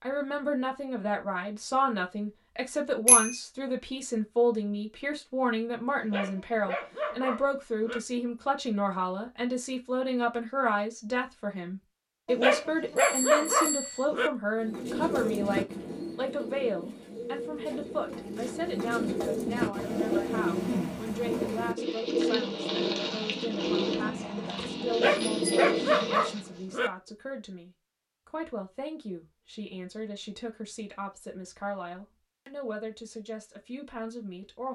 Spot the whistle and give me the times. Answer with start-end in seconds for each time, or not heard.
not heard.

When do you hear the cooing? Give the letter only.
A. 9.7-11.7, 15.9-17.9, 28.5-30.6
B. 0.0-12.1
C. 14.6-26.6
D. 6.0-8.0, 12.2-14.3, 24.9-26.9
C.